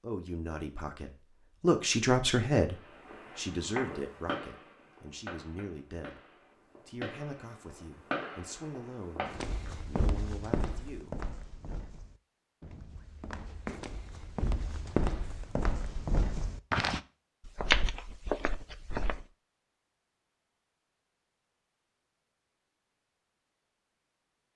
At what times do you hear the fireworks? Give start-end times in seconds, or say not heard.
2.8-9.7.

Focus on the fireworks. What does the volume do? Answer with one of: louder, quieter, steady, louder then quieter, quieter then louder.
quieter then louder.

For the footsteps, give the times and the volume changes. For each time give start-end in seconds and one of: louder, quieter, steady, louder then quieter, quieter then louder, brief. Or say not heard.
9.2-19.2 quieter then louder.